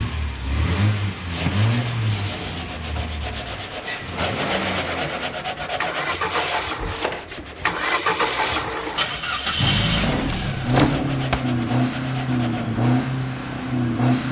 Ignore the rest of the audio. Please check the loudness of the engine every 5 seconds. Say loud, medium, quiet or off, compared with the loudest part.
medium, loud, loud.